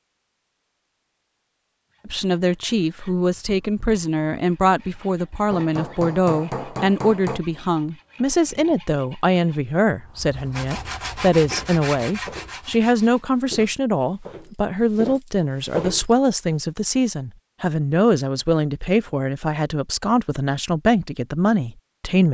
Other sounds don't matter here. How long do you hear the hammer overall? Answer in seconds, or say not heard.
2 s.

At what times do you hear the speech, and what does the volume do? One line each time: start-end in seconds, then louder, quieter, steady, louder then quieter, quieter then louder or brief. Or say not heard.
2.0-22.2 steady.